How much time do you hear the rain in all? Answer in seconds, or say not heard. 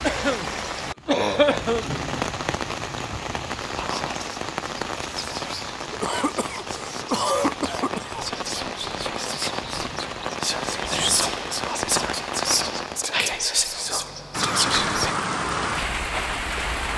17 s.